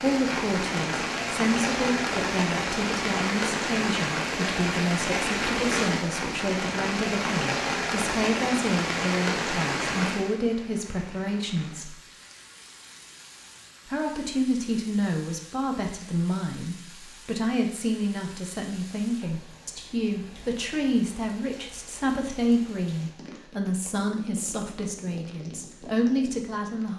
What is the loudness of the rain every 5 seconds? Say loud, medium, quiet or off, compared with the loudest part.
loud, loud, quiet, quiet, quiet, quiet.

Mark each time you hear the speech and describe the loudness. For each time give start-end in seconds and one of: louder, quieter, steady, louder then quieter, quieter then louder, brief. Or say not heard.
0.0-11.9 steady
13.8-26.9 steady.